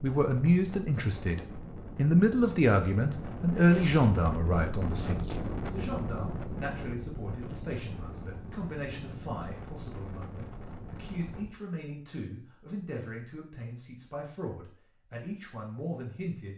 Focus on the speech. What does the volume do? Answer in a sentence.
The volume of the speech goes down.